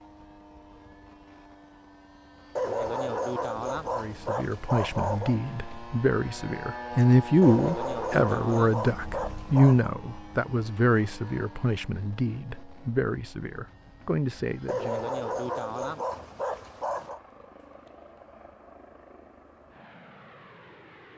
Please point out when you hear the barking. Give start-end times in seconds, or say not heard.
2.5-5.4, 7.4-9.9, 14.7-17.2.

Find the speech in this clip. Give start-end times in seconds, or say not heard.
4.0-15.1.